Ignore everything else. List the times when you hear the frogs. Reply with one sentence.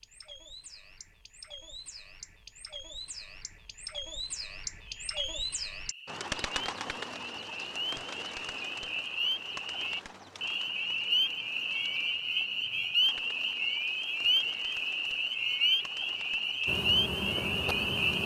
The frogs can be heard from 4.8 to 18.2 s.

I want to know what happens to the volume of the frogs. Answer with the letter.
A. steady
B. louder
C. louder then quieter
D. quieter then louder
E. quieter
B.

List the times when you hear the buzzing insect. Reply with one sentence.
The buzzing insect can be heard from 16.6 to 18.2 s.